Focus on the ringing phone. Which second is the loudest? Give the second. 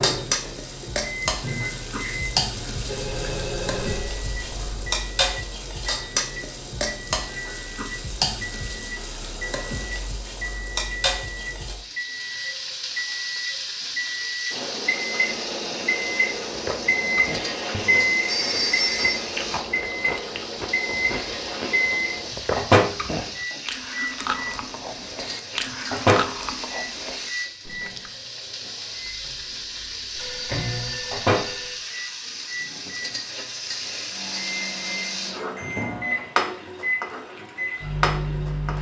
19 s.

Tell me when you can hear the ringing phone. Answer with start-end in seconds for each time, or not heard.
2.9-4.9, 18.2-19.2, 30.1-31.8.